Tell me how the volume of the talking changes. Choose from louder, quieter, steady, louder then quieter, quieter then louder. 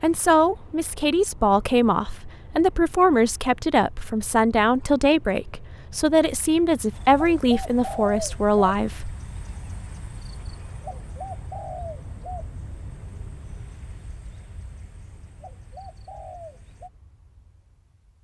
steady.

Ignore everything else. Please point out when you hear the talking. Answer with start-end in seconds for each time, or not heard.
0.0-9.2.